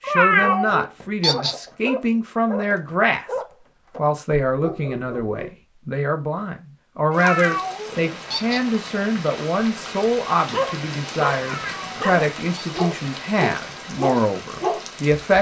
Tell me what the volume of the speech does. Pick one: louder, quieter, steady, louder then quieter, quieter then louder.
steady.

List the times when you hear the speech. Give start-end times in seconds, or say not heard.
0.1-3.2, 4.0-15.3.